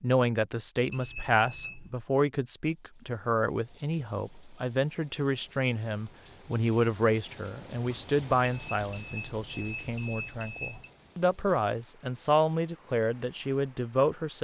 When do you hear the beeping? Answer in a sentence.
The beeping can be heard from 0.9 to 2.0 s and from 8.4 to 10.9 s.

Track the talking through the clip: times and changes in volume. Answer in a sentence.
You can hear the talking from 0.0 to 14.3 s, getting quieter then louder.